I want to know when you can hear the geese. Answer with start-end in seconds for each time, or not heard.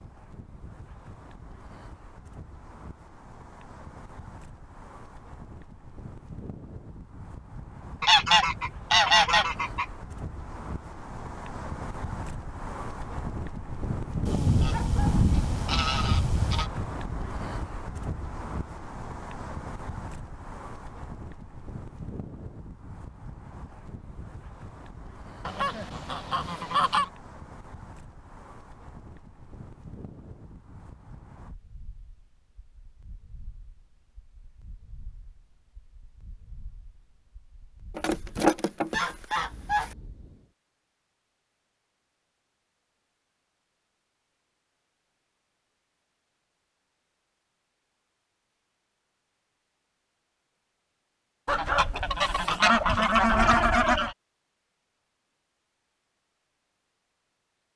8.0-9.8, 14.2-16.7, 25.4-27.1, 38.0-39.9, 51.5-54.1.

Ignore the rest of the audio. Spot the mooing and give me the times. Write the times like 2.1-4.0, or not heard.
not heard.